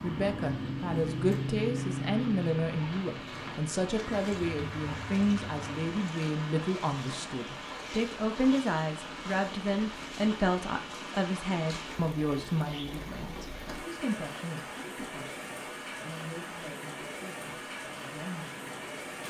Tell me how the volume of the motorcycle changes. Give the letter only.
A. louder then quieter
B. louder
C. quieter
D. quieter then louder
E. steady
C.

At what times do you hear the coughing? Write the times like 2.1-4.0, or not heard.
not heard.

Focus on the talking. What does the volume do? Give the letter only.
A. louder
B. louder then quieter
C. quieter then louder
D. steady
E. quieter
E.